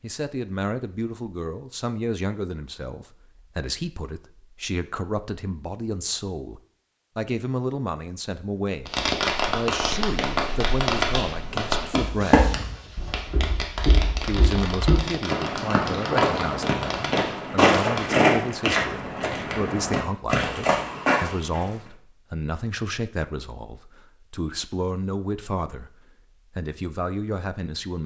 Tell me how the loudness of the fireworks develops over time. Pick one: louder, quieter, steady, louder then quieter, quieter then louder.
quieter.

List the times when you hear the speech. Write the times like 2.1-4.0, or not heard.
0.0-12.5, 14.2-28.0.